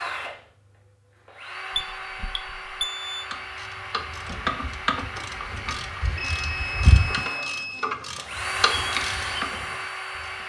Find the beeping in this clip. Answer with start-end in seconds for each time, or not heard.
1.7-3.2, 6.2-8.0.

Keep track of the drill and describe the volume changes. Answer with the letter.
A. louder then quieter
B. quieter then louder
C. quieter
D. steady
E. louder
E.